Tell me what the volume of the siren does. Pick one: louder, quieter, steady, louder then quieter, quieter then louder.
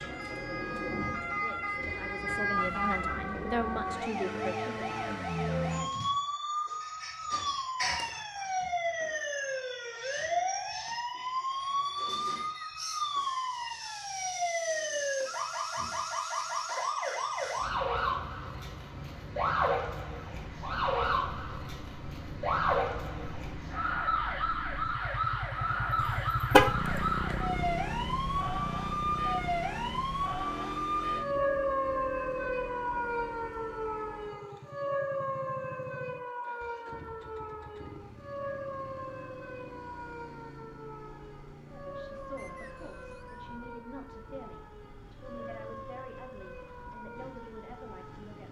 quieter.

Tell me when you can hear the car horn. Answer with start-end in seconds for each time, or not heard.
26.0-27.4.